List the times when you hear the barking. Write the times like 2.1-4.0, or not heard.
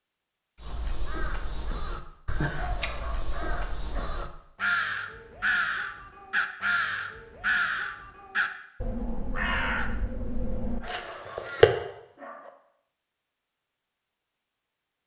2.5-4.2, 10.8-12.5.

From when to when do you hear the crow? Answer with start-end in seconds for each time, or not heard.
0.6-11.7.